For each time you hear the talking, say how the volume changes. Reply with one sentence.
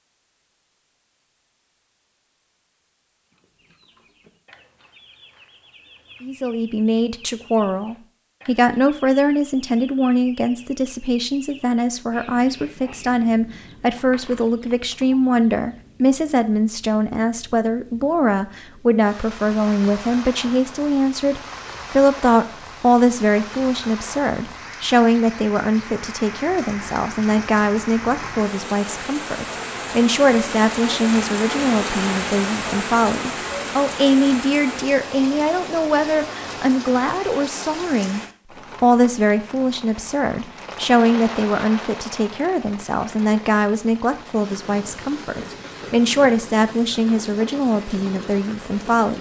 The talking can be heard from 6.2 to 38.2 s, at a steady volume; and from 38.8 to 49.1 s, at a steady volume.